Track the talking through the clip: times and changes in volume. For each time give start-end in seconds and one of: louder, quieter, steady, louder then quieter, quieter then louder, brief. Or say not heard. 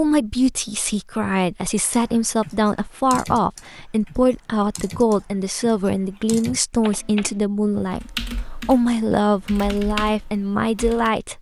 0.0-11.3 steady.